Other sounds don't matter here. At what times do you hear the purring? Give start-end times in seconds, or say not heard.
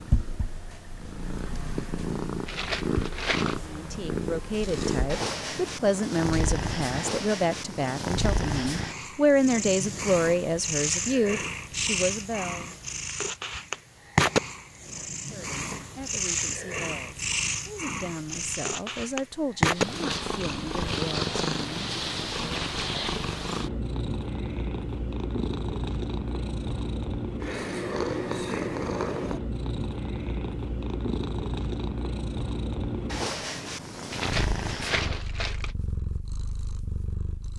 0.0-37.5.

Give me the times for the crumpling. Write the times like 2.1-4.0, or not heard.
2.5-3.6, 34.1-35.8.